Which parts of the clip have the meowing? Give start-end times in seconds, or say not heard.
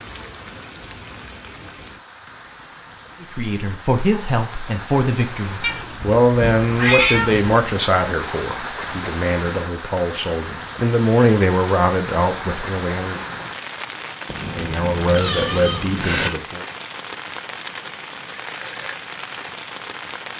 5.6-7.5, 14.2-16.3.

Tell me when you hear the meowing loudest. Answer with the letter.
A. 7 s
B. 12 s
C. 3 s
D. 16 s
A.